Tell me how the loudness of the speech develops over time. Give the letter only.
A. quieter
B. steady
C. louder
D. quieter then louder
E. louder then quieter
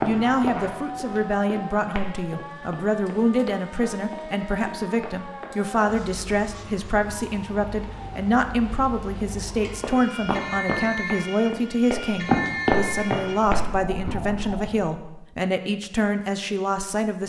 B.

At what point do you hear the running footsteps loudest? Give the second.
12 s.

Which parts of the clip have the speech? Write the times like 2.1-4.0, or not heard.
0.0-17.2.